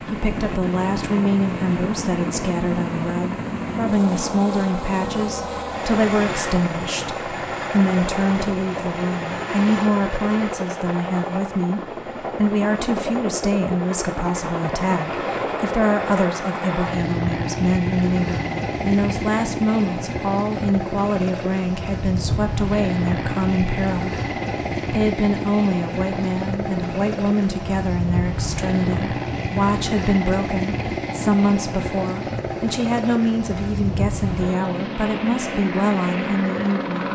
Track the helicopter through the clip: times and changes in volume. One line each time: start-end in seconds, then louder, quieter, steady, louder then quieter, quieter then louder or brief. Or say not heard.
0.0-37.0 steady.